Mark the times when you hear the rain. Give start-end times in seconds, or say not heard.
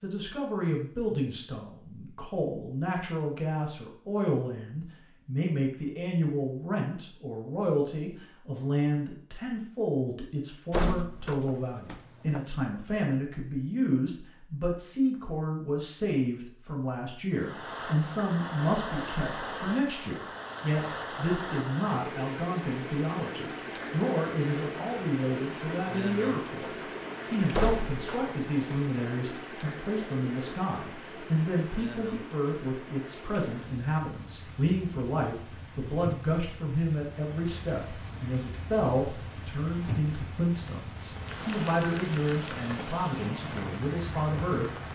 17.3-44.8.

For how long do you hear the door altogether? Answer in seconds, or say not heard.
3 s.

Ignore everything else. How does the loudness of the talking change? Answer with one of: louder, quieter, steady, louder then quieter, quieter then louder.
steady.